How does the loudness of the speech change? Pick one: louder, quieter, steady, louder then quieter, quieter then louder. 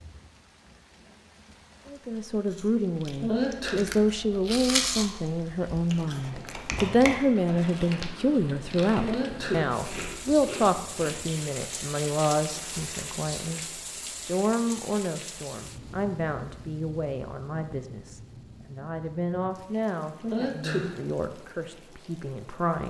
quieter.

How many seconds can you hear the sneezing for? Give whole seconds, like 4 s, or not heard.
2 s.